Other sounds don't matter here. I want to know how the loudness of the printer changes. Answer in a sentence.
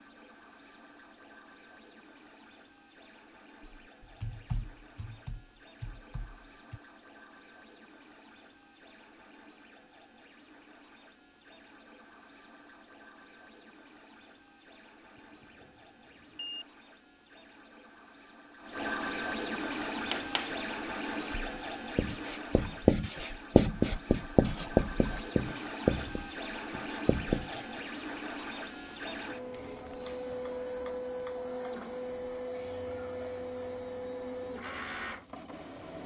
The volume of the printer goes up.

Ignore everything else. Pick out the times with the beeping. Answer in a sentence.
The beeping can be heard from 15.2 to 16.6 s.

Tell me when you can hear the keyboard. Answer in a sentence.
You can hear the keyboard from 3.6 to 6.8 s.